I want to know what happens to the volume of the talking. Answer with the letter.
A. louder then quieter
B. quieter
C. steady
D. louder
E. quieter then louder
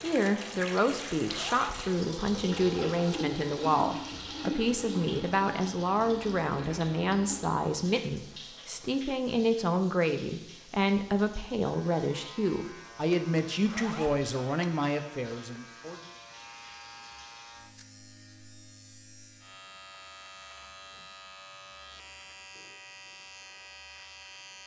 C.